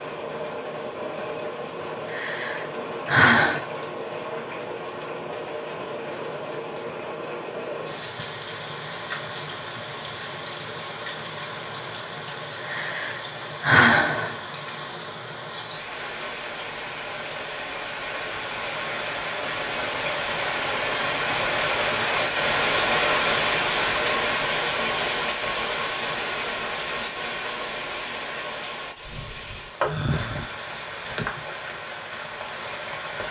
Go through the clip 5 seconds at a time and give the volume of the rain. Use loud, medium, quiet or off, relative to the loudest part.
medium, medium, medium, medium, loud, medium, medium.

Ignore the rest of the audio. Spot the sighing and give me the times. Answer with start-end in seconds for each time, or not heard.
2.1-3.6, 12.7-14.3, 29.8-31.2.